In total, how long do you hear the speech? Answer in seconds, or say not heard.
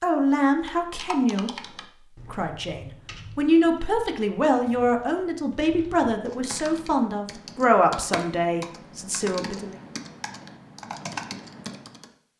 9 s.